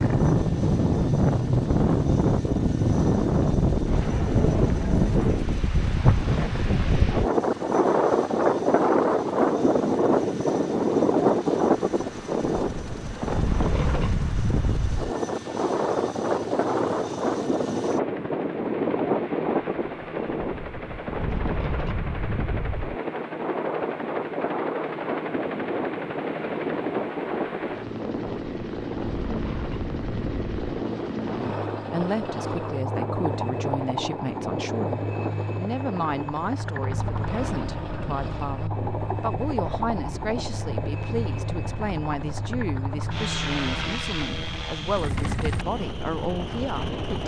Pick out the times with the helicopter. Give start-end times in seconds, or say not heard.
0.0-47.2.